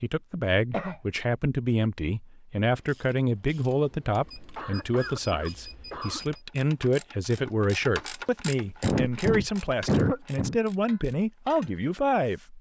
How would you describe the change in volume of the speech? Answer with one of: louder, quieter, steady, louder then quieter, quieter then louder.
steady.